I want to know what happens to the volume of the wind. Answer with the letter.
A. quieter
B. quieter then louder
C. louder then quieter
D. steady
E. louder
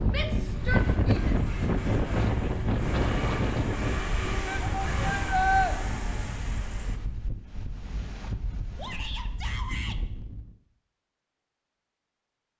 A.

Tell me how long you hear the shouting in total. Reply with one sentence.
You can hear the shouting for 4 seconds altogether.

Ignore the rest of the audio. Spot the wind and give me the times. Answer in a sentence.
You can hear the wind from 0.0 to 10.6 s.